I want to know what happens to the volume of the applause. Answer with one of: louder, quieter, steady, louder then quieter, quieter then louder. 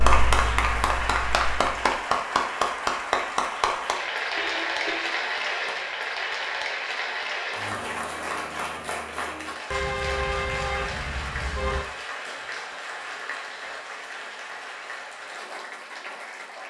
quieter.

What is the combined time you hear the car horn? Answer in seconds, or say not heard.
3 s.